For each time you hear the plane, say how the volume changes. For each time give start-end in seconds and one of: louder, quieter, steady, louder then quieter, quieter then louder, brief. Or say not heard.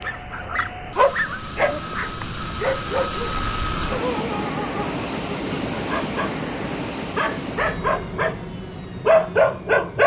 0.0-10.0 louder then quieter.